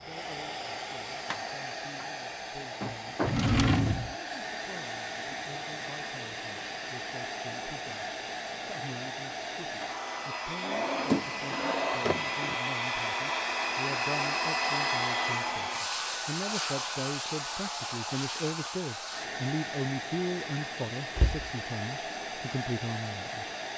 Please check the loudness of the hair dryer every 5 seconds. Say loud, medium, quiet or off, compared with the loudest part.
medium, medium, loud, loud, medium.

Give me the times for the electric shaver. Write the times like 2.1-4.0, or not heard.
not heard.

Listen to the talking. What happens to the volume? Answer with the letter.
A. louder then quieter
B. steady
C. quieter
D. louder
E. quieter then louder
D.